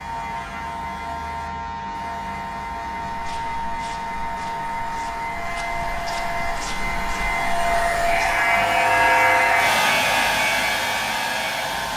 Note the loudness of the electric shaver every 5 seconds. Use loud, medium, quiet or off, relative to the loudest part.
medium, loud, loud.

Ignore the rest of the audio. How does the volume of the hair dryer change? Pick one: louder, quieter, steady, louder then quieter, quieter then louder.
louder.